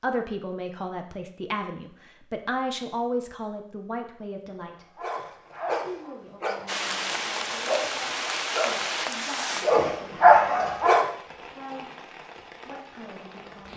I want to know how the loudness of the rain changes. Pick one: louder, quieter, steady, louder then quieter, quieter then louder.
quieter.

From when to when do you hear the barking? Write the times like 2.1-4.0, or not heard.
5.0-11.1.